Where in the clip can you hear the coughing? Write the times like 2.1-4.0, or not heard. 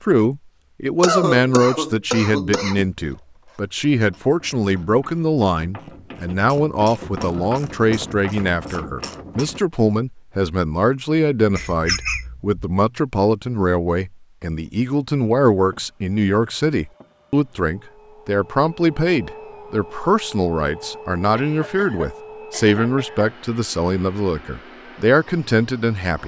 1.0-2.9, 11.6-12.5, 21.3-23.4.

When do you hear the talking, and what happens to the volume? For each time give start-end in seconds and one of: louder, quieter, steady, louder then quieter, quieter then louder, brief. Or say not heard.
0.0-26.2 steady.